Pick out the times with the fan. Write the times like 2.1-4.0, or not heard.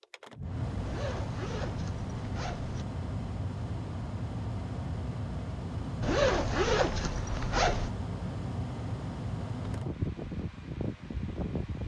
0.0-11.8.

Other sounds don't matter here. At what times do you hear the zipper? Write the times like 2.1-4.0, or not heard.
0.8-2.9, 6.0-7.9.